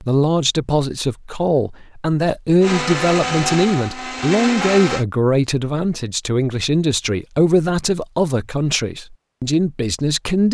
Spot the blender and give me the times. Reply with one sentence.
The blender can be heard from 2.6 to 5.0 s.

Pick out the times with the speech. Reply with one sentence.
You can hear the speech from 0.0 to 10.4 s.